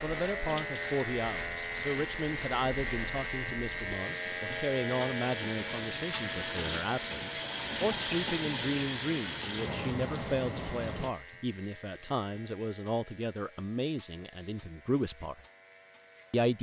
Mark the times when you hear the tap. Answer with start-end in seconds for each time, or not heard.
0.0-11.1.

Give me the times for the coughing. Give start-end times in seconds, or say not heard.
not heard.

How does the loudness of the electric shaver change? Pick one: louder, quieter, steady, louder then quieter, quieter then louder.
quieter.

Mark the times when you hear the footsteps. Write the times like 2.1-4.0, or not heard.
not heard.